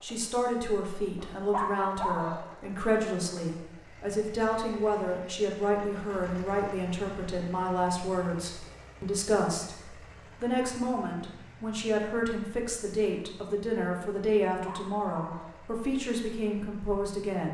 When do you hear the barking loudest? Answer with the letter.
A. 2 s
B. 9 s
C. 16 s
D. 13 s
A.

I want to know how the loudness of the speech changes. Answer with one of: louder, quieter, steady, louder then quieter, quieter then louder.
steady.